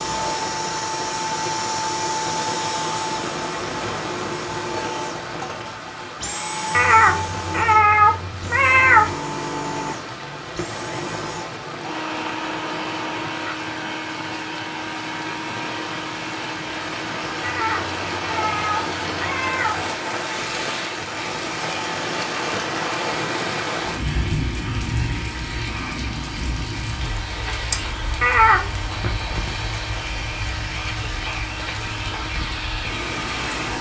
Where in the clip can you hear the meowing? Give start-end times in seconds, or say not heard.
6.7-9.2, 17.4-19.9, 28.2-28.9.